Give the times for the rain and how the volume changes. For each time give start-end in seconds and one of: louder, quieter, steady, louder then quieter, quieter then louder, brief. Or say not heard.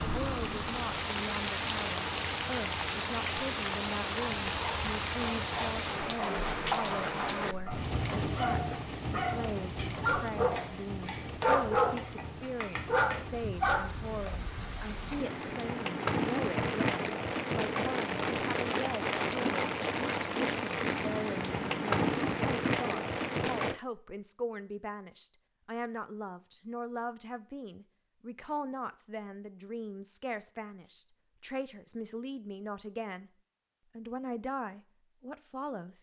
0.0-23.8 quieter then louder.